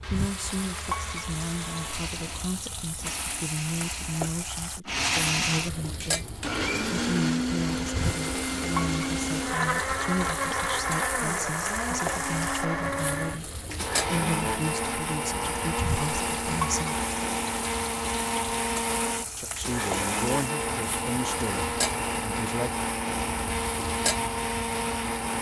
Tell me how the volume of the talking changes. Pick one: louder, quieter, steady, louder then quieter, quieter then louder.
steady.